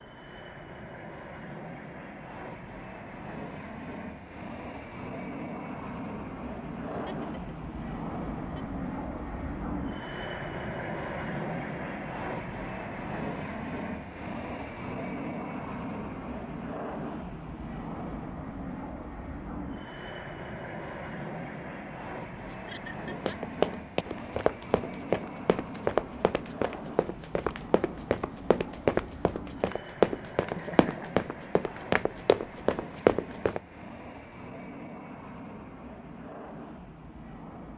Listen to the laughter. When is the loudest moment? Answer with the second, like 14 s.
31 s.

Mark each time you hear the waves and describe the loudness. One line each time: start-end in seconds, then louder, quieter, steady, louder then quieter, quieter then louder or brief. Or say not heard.
not heard.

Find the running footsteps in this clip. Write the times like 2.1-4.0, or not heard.
23.2-33.6.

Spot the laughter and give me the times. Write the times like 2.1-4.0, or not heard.
6.8-8.7, 22.4-23.4, 30.4-31.1.